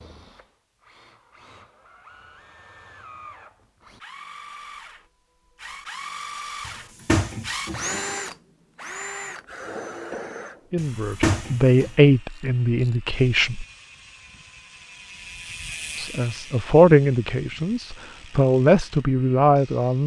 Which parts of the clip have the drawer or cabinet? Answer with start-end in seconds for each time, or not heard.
6.7-8.1, 10.8-11.9.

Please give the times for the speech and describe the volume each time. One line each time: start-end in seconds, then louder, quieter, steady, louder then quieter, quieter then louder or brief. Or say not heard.
10.7-13.7 brief
15.9-20.0 quieter then louder.